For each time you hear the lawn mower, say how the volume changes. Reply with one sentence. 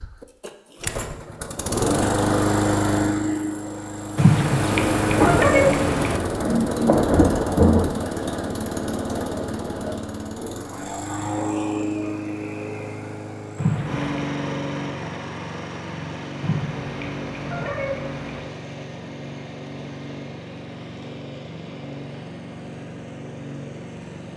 The lawn mower can be heard from 0.0 to 24.3 s, getting quieter.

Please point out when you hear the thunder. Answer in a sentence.
You can hear the thunder from 4.7 to 8.0 s.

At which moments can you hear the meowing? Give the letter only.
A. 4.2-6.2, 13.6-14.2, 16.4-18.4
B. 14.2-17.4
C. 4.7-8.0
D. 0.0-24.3
A.